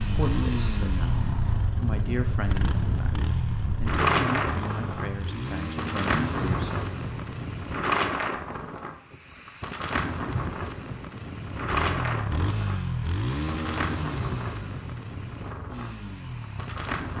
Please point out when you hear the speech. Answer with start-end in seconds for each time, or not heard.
0.0-6.8.